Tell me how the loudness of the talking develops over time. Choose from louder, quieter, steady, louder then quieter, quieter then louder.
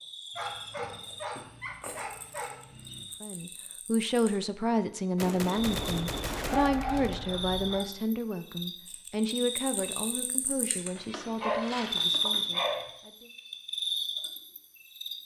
quieter.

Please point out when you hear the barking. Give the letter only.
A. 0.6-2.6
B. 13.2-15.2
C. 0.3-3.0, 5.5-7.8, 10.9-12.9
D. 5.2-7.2
C.